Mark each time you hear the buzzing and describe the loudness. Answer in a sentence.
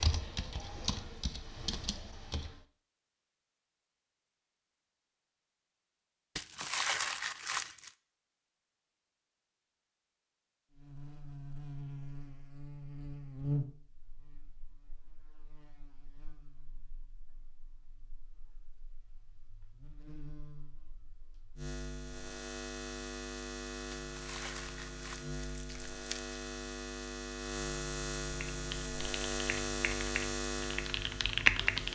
You can hear the buzzing from 10.8 to 31.8 s, getting quieter then louder.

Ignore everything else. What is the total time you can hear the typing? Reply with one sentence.
You can hear the typing for 6 seconds altogether.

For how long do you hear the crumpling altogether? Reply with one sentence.
The crumpling can be heard for 4 seconds in total.